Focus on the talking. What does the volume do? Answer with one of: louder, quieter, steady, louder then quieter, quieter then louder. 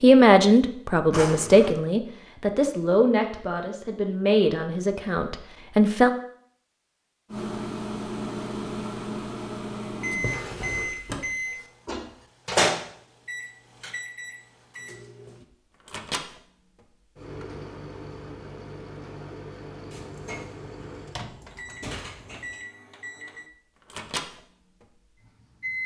quieter.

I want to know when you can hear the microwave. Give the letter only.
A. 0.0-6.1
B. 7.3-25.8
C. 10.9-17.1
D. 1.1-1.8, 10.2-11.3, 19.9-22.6
B.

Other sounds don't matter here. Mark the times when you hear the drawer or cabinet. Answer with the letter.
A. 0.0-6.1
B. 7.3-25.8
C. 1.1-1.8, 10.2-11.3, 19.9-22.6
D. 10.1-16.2
C.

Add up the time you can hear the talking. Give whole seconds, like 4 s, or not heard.
6 s.